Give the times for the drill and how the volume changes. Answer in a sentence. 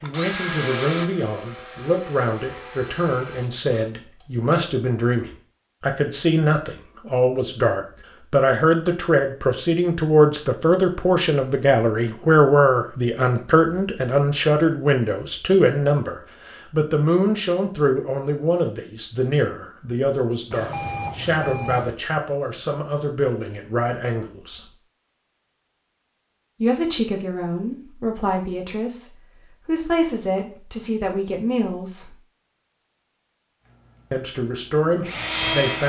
You can hear the drill from 0.0 to 4.3 s, getting quieter; and briefly from 33.6 to 35.8 s.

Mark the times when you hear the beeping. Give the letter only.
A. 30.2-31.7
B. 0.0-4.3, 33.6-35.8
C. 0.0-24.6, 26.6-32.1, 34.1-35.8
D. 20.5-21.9
D.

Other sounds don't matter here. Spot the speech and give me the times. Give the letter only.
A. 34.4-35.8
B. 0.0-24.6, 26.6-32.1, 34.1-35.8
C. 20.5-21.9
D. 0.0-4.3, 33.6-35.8
B.